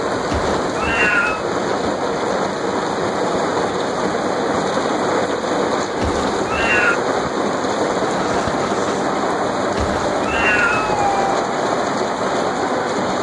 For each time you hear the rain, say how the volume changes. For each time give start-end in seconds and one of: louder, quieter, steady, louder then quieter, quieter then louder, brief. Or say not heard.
0.0-13.1 steady.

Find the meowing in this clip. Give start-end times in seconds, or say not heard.
0.2-1.4, 6.0-7.0, 9.8-11.4.